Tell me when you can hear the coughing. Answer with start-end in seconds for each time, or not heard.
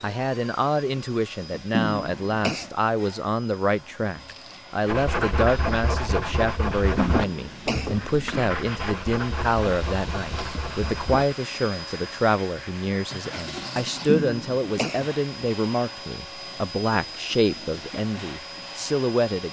1.7-2.7, 7.0-8.0, 14.1-15.1.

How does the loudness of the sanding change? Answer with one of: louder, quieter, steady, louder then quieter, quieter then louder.
quieter.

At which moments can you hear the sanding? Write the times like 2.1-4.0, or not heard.
4.8-13.2.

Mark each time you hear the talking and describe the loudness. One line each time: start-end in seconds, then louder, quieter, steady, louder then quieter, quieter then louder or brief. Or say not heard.
0.0-19.4 steady.